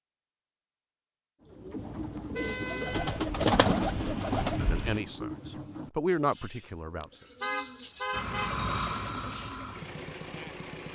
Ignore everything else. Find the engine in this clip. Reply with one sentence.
You can hear the engine from 3.0 to 5.0 s and from 8.1 to 10.9 s.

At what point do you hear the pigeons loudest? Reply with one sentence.
The loudest moment of the pigeons is at 4 seconds.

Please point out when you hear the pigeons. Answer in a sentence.
You can hear the pigeons from 1.5 to 9.9 s.